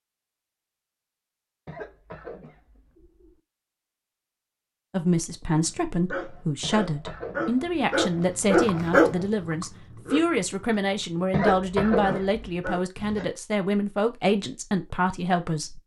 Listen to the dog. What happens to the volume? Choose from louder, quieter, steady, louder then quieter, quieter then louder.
louder then quieter.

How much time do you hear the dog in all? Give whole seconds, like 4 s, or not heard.
8 s.